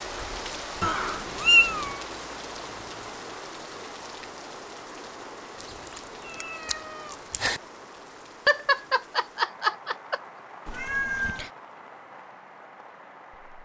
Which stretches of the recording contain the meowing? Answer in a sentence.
You can hear the meowing from 0.8 to 2.0 s, from 6.4 to 7.6 s and from 10.7 to 11.5 s.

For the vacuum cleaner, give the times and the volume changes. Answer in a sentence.
The vacuum cleaner can't be heard in this clip.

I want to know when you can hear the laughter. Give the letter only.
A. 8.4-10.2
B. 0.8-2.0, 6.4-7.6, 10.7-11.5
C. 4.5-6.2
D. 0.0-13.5
A.